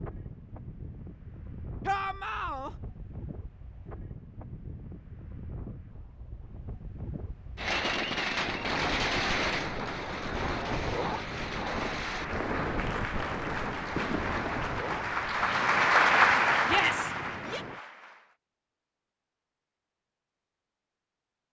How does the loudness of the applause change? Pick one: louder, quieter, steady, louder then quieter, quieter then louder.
louder then quieter.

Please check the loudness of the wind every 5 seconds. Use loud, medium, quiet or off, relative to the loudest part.
medium, medium, loud, medium, off.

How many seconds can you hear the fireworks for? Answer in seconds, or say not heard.
8 s.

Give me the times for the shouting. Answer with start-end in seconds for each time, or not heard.
1.9-2.7, 16.6-17.6.